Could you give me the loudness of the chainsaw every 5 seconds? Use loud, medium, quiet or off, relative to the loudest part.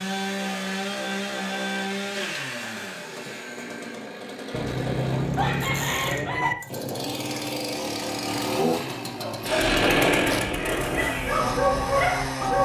medium, loud, loud.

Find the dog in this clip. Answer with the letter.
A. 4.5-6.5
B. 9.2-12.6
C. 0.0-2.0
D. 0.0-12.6
B.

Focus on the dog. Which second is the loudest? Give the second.
12 s.